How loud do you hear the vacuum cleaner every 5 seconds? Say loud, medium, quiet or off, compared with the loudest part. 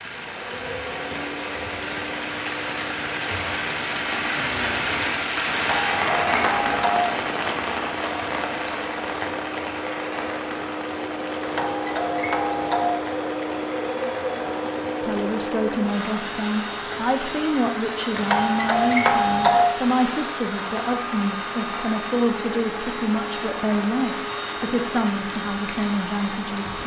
medium, medium, loud, loud, loud, loud.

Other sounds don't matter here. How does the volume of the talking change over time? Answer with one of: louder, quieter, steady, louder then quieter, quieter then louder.
steady.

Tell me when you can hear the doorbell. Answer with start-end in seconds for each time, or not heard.
5.5-7.0, 11.4-12.9, 18.1-19.6.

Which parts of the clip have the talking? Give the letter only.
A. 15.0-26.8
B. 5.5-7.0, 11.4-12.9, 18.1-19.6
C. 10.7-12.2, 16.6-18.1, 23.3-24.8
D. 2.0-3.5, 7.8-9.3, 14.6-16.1
A.